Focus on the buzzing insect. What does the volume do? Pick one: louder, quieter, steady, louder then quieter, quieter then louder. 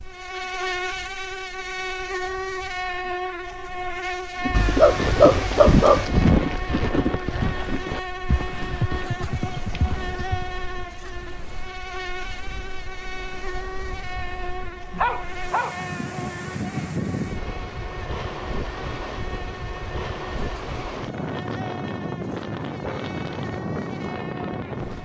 quieter.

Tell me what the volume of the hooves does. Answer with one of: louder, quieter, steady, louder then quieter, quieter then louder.
quieter.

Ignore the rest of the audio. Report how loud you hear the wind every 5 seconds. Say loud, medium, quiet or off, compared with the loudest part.
quiet, quiet, quiet, loud, loud.